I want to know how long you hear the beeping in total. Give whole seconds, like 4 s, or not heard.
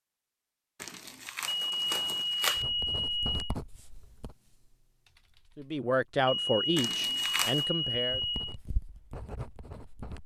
4 s.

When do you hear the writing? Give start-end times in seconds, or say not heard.
2.5-4.3, 8.0-10.2.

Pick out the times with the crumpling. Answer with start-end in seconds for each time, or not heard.
0.8-2.6, 6.8-7.7.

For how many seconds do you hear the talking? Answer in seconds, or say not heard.
3 s.